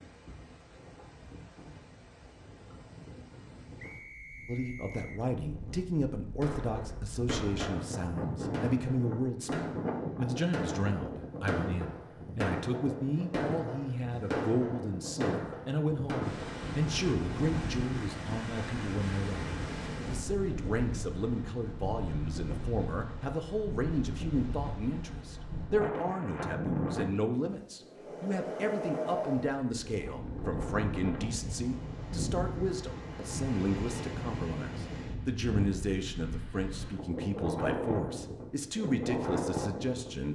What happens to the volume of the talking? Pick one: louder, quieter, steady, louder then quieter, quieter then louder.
steady.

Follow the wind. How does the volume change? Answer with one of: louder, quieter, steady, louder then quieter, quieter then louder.
louder.